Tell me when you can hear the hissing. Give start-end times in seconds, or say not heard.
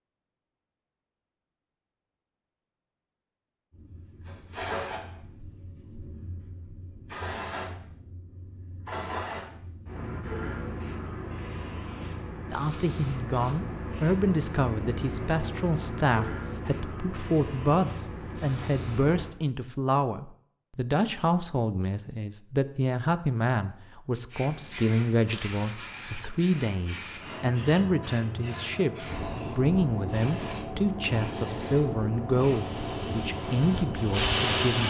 3.8-19.3, 24.3-34.8.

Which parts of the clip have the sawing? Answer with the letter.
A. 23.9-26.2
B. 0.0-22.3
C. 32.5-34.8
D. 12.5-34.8
C.